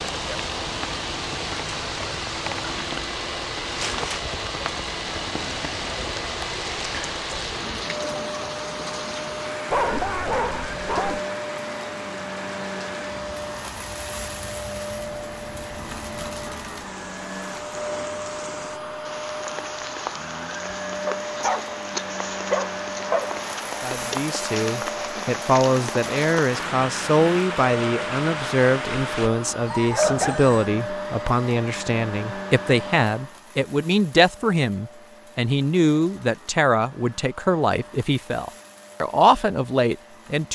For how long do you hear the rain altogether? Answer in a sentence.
The rain can be heard for 29 seconds in total.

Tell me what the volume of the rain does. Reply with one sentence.
The volume of the rain goes down, then up.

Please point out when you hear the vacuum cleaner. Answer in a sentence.
The vacuum cleaner can be heard from 0.0 to 40.4 s.